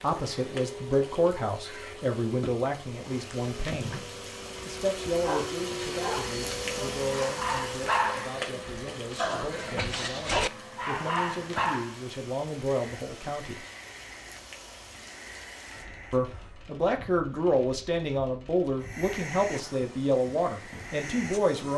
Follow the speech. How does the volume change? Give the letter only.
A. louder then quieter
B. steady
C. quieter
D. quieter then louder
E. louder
D.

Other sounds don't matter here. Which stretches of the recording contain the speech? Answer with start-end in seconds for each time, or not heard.
0.0-4.0, 4.7-13.7, 16.1-21.7.